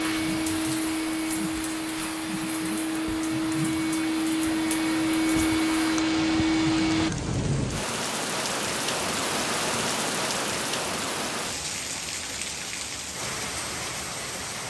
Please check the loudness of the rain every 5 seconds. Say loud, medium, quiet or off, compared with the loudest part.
medium, loud, loud.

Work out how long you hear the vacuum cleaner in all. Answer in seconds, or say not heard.
7 s.